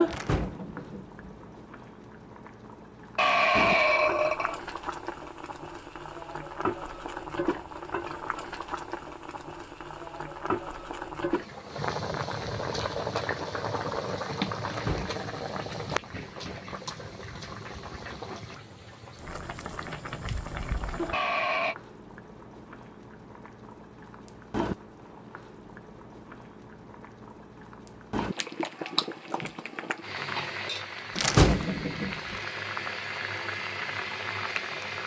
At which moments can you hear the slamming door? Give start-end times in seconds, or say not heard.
0.1-1.4, 14.7-15.6, 31.1-32.4.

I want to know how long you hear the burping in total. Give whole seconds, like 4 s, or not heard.
2 s.